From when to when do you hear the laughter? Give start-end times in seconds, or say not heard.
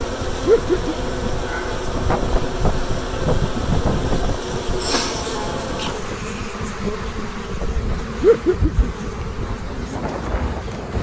0.5-1.3, 8.2-9.1.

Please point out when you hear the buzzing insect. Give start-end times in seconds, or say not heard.
0.0-10.9.